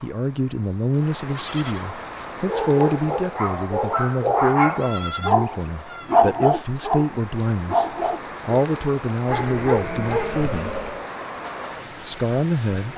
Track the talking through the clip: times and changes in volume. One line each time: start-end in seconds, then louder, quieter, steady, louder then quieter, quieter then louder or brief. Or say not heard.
0.0-10.7 steady
12.1-12.9 brief.